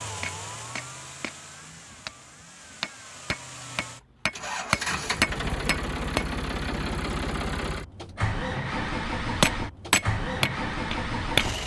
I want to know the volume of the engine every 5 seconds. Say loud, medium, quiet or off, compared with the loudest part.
medium, loud, loud.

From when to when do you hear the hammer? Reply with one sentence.
You can hear the hammer from 0.2 to 6.2 s and from 9.4 to 11.4 s.